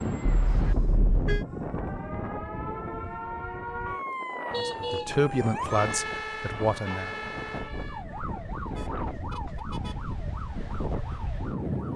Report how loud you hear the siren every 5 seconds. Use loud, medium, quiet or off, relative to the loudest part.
loud, loud, medium.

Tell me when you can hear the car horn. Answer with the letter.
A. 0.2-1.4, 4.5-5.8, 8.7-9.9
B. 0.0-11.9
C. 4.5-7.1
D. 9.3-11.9
A.